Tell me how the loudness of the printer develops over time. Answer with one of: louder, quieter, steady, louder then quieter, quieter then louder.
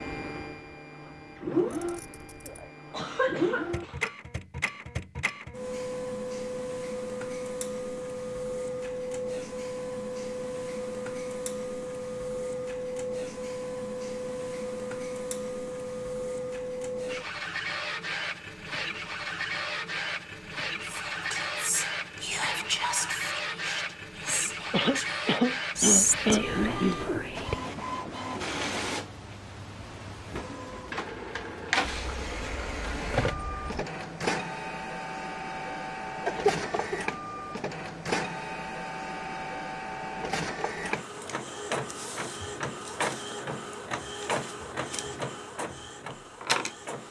steady.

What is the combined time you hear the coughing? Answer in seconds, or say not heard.
5 s.